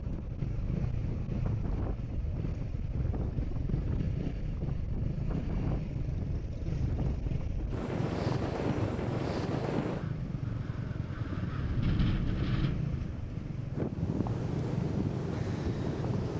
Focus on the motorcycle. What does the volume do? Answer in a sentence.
The volume of the motorcycle stays about the same.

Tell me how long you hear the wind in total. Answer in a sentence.
You can hear the wind for 16 seconds altogether.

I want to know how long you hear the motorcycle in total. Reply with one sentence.
You can hear the motorcycle for 16 seconds altogether.